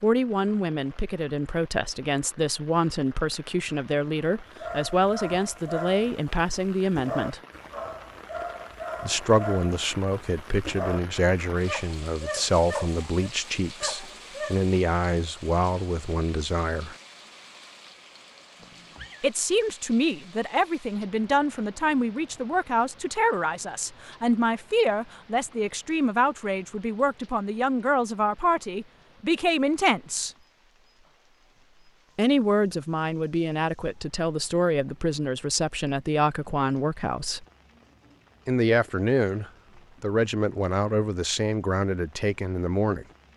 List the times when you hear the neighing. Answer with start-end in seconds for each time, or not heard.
18.6-19.2.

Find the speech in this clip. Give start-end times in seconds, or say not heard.
0.0-7.4, 9.0-16.9, 19.2-30.3, 32.1-37.5, 38.5-43.0.